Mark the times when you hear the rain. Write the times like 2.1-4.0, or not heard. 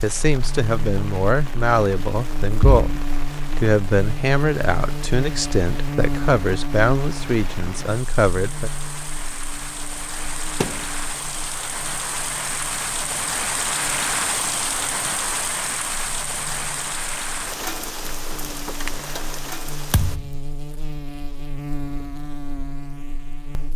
0.0-20.2.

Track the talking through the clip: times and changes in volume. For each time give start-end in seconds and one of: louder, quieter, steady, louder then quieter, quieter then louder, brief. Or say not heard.
0.0-8.7 steady.